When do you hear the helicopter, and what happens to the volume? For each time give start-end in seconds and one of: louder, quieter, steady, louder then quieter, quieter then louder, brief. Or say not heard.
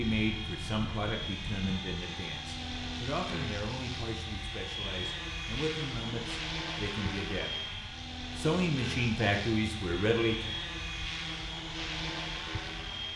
0.0-13.1 steady.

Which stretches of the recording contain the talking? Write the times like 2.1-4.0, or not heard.
0.0-7.7, 8.3-10.6.